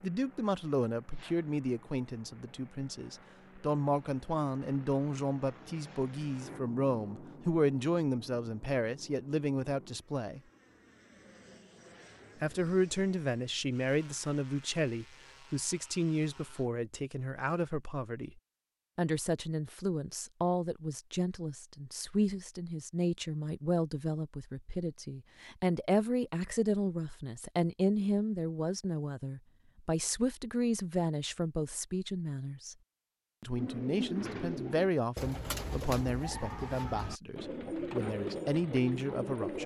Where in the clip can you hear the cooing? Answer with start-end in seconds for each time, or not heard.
33.5-39.6.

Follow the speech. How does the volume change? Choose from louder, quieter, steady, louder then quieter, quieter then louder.
steady.